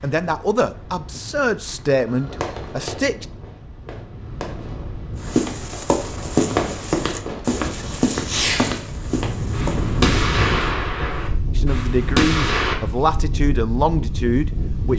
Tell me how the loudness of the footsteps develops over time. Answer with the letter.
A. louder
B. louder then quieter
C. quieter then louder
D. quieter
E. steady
D.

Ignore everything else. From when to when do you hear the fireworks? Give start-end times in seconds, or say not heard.
2.0-12.8.